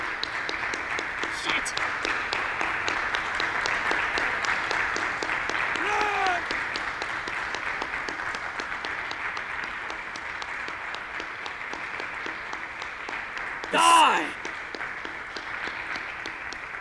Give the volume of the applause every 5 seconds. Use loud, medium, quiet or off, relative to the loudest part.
loud, loud, medium, medium.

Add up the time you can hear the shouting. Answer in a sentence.
You can hear the shouting for 2 seconds altogether.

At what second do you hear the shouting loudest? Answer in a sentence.
The loudest moment of the shouting is at 14 seconds.